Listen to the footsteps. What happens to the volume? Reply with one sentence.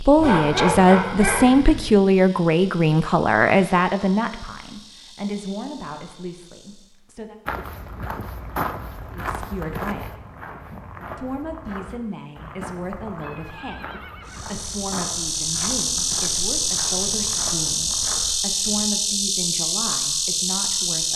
The loudness of the footsteps goes down.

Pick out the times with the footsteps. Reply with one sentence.
You can hear the footsteps from 7.5 to 18.9 s.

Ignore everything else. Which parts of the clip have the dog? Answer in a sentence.
The dog can be heard from 0.1 to 1.9 s.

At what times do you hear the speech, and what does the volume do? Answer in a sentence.
The speech can be heard from 0.0 to 7.3 s, getting quieter; briefly from 9.1 to 10.2 s; and from 11.2 to 21.1 s, at a steady volume.